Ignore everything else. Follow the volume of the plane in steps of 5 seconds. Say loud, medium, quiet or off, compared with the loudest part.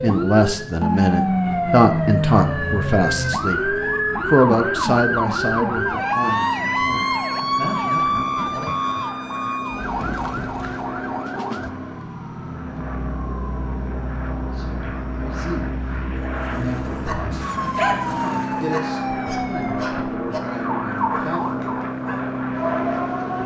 medium, medium, medium, loud, loud.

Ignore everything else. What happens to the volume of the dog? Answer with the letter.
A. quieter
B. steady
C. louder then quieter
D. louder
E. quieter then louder
C.